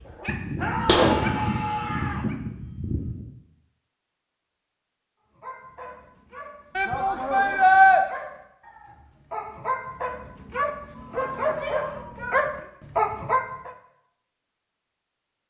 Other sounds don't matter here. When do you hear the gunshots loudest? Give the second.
1 s.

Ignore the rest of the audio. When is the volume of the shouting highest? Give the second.
8 s.